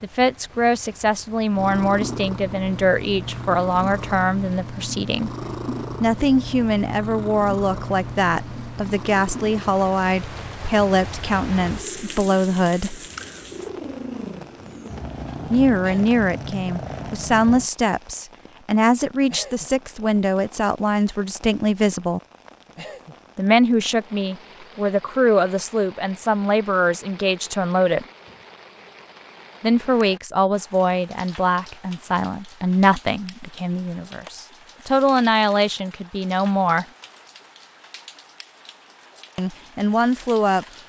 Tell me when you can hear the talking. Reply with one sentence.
You can hear the talking from 0.0 to 5.3 s, from 6.0 to 13.0 s, from 15.5 to 22.2 s, from 23.4 to 28.1 s, from 29.6 to 36.9 s and from 39.4 to 40.6 s.